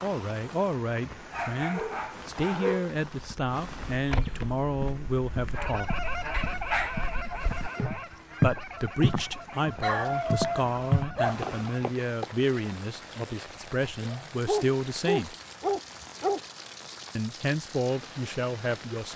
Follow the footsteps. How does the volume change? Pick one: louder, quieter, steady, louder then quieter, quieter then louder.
quieter then louder.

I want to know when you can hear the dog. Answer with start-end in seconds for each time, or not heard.
1.3-2.9, 6.3-7.9, 9.8-11.5, 14.4-16.4.